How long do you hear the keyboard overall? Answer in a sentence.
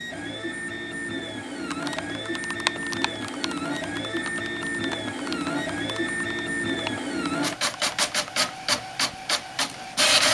The keyboard can be heard for 7 seconds in total.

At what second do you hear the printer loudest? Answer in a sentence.
The volume of the printer peaks at 10 seconds.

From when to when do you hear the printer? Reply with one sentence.
You can hear the printer from 0.0 to 10.2 s.